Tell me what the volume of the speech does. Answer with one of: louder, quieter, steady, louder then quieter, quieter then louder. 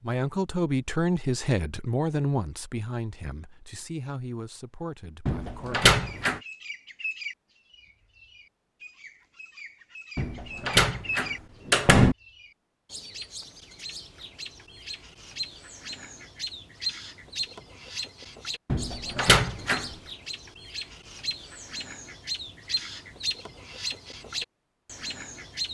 quieter.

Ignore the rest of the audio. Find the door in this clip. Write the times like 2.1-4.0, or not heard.
5.2-6.4, 10.2-12.2, 18.6-19.9.